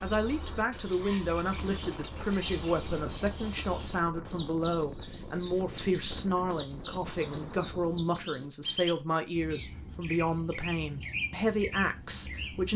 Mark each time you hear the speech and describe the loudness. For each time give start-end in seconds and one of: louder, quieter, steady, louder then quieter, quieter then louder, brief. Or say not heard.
0.0-12.7 steady.